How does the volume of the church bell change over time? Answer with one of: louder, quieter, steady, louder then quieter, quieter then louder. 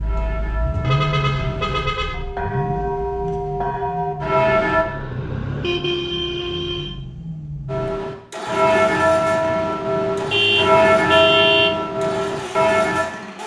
louder.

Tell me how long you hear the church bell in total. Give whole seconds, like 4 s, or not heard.
10 s.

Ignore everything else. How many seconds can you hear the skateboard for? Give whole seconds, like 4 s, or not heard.
not heard.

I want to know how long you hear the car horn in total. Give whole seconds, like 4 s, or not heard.
5 s.